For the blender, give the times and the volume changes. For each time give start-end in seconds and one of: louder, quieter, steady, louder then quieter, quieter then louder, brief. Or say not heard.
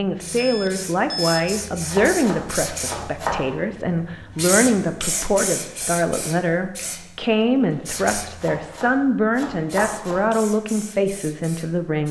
not heard.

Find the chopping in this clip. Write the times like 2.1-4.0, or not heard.
1.9-3.4, 8.3-10.2.